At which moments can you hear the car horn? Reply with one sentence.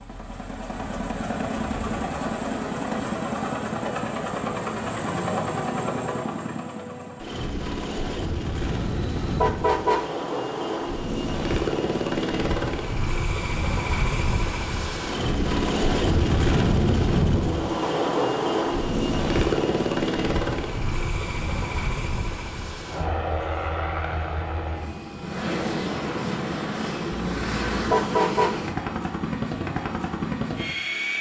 The car horn can be heard from 8.6 to 10.1 s and from 27.2 to 28.6 s.